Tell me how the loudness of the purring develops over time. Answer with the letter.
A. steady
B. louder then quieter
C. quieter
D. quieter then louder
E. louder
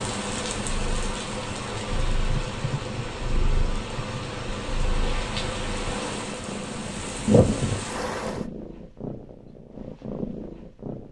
A.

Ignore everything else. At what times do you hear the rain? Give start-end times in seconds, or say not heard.
0.0-8.4.